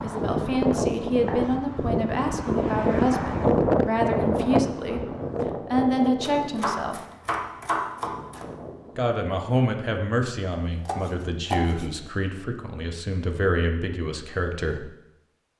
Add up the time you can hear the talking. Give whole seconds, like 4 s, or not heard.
12 s.